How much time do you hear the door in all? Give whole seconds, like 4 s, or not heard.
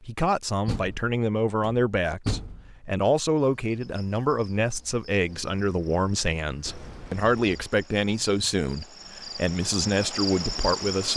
3 s.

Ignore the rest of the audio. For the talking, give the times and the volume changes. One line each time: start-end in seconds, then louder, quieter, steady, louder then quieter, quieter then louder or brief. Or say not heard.
0.0-11.1 steady.